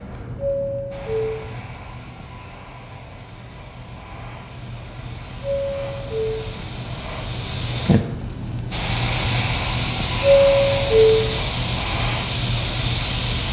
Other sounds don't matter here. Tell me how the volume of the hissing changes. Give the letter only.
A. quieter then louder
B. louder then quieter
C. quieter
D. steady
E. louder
E.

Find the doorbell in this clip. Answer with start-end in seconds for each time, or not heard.
0.3-1.6, 5.4-6.5, 10.2-11.3.